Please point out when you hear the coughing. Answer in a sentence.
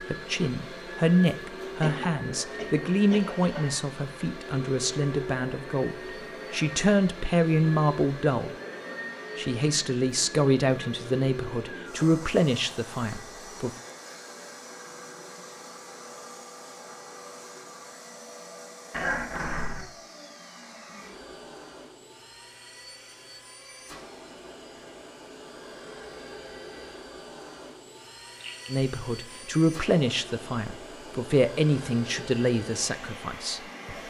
You can hear the coughing from 1.8 to 3.7 s, from 18.9 to 19.9 s and from 28.4 to 28.9 s.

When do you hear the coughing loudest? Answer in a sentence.
The loudest moment of the coughing is at 19 seconds.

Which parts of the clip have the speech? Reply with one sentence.
You can hear the speech from 0.1 to 8.5 s, from 9.3 to 13.7 s and from 28.6 to 34.0 s.